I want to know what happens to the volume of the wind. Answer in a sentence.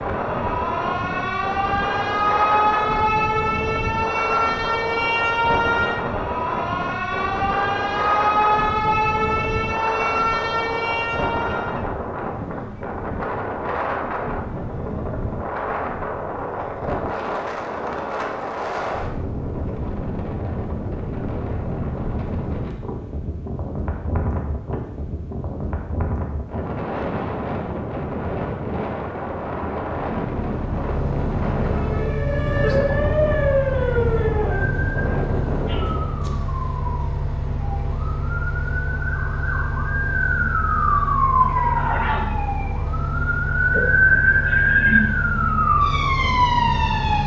The loudness of the wind stays about the same.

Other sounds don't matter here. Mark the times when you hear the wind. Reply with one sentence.
You can hear the wind from 0.0 to 36.3 s.